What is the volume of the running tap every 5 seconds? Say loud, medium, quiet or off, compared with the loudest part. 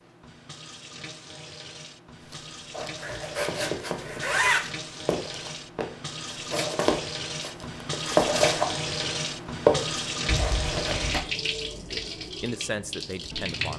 medium, loud, loud.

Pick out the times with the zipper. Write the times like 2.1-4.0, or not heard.
3.0-4.7, 10.2-11.2.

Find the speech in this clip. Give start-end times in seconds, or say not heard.
11.8-13.7.